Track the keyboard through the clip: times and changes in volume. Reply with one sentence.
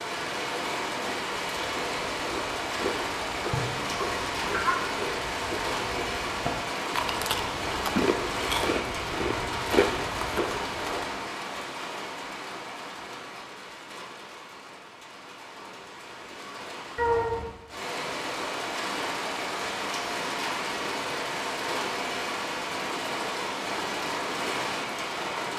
The keyboard can't be heard in this clip.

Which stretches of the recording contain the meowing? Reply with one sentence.
You can hear the meowing from 3.5 to 4.8 s and from 16.9 to 17.6 s.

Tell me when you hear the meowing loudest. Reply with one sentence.
The volume of the meowing peaks at 17 seconds.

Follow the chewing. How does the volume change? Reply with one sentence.
The loudness of the chewing goes up.